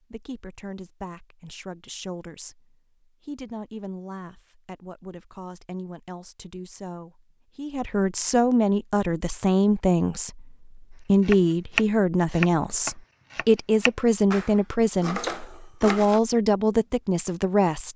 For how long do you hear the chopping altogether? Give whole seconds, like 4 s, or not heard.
5 s.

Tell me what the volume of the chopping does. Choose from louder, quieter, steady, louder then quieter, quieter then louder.
quieter then louder.